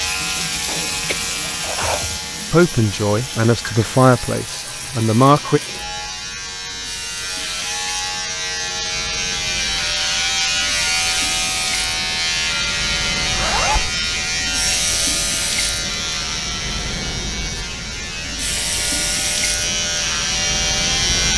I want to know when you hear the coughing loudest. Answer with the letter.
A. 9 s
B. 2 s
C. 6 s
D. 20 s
B.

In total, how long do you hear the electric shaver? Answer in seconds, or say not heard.
21 s.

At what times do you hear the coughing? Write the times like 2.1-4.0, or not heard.
0.7-2.2.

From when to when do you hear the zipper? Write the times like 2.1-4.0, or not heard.
13.3-13.9.